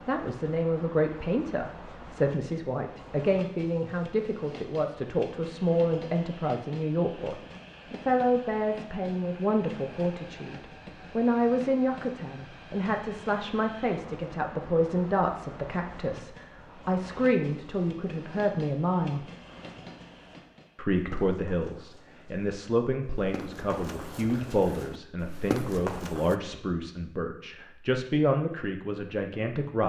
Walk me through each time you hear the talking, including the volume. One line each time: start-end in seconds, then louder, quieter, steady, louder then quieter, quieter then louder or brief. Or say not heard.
0.1-19.2 steady
20.8-29.8 steady.